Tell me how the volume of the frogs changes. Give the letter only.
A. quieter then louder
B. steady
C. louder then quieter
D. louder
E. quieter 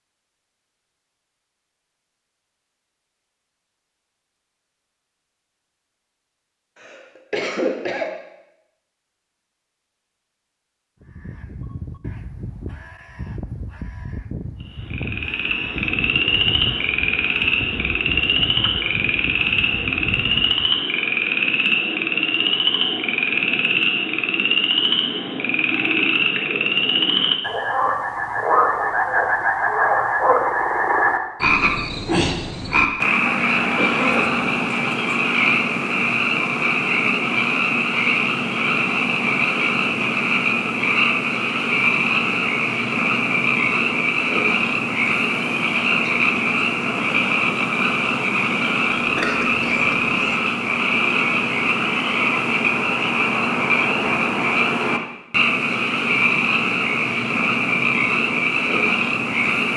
B.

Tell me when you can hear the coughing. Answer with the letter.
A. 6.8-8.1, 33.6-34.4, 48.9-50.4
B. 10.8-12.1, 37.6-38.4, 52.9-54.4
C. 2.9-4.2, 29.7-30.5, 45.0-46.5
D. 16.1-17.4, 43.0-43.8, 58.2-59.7
A.